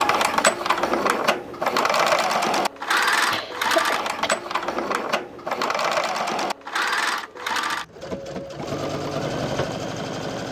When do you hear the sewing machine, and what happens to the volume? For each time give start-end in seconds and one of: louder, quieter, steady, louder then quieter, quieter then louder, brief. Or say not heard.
0.0-10.4 quieter.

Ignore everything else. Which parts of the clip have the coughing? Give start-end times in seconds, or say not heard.
3.3-4.3.